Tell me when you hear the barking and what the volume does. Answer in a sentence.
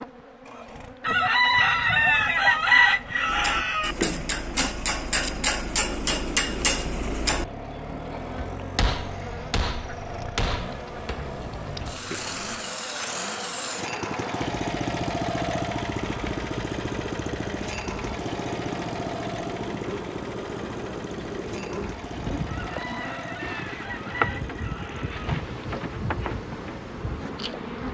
The barking can't be heard in this clip.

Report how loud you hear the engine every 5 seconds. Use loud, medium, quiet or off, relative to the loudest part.
quiet, medium, loud, loud, medium, medium.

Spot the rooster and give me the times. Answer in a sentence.
The rooster can be heard from 1.1 to 4.0 s and from 22.4 to 25.2 s.